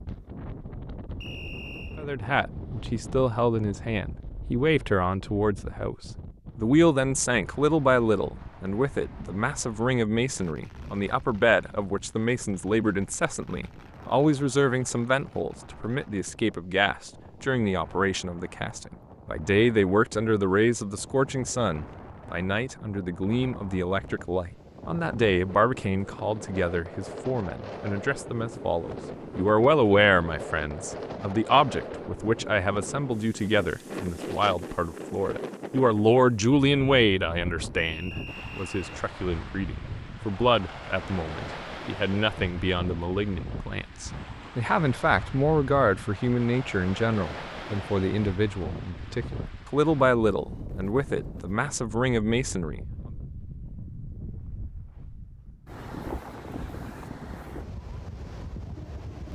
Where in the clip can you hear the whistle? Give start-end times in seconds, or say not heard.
1.2-2.0, 37.8-39.0.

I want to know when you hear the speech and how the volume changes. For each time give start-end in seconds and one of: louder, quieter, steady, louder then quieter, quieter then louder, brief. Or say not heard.
1.9-52.8 steady.